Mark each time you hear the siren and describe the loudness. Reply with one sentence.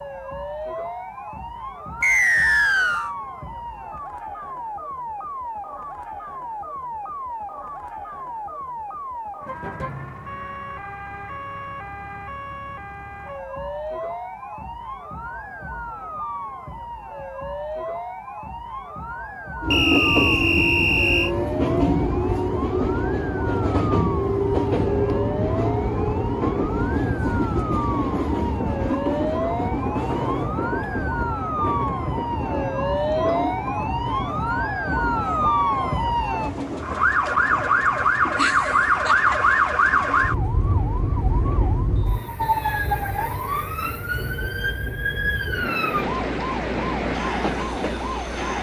You can hear the siren from 0.0 to 48.5 s, getting louder.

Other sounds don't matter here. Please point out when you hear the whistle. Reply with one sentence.
You can hear the whistle from 2.0 to 3.1 s, from 19.7 to 21.3 s and from 42.0 to 43.1 s.